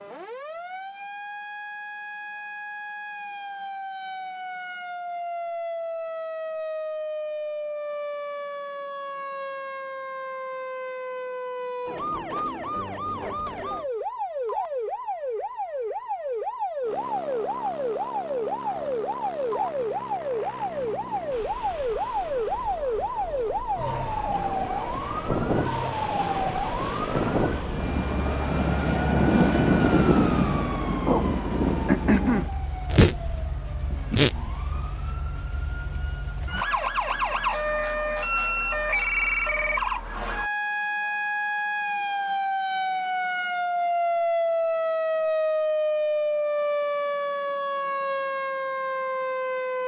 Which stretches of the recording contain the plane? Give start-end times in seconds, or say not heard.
16.8-32.5.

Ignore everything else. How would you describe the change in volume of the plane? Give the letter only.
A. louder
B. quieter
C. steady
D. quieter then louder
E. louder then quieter
A.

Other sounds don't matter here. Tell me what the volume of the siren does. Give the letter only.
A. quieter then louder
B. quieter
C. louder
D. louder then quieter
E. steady
C.